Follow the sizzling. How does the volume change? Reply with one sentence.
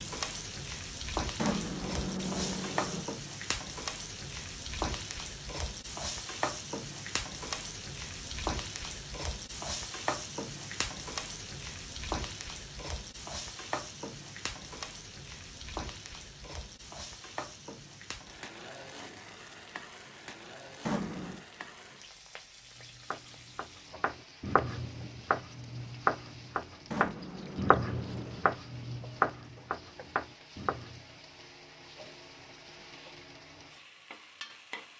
The loudness of the sizzling goes down.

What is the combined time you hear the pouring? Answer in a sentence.
The pouring can be heard for 4 seconds in total.